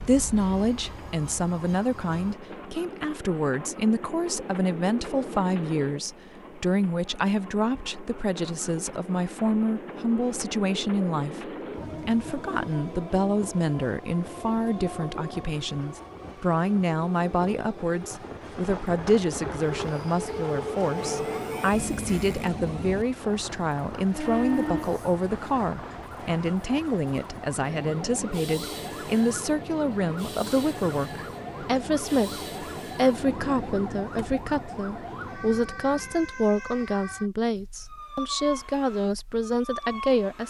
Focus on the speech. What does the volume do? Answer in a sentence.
The loudness of the speech stays about the same.